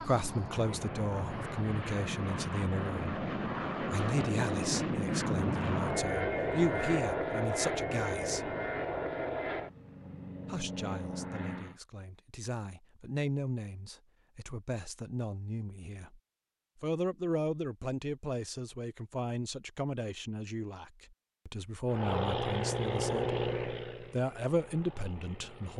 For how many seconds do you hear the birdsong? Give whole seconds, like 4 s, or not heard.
not heard.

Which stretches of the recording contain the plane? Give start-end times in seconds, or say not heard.
0.0-11.8, 21.9-25.7.